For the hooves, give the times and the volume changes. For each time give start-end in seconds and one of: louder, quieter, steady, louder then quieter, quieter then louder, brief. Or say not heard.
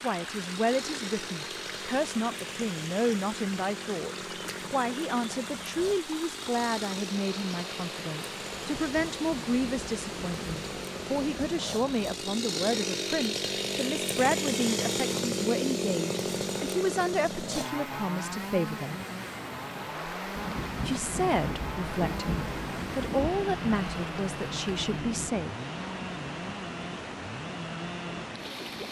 not heard.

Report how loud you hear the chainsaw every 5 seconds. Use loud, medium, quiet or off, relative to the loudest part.
medium, medium, loud, loud, medium, medium.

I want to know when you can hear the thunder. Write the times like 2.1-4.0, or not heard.
8.6-12.1, 20.4-25.3.